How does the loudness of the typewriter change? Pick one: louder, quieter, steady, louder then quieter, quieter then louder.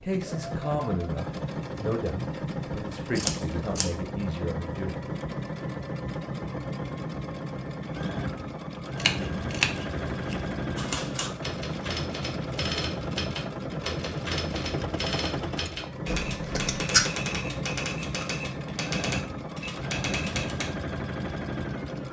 steady.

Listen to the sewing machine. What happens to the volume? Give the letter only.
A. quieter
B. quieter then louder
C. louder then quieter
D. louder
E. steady
E.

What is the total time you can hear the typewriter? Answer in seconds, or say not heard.
10 s.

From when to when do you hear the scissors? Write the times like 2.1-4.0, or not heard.
3.1-3.9, 8.9-10.6, 16.1-17.1.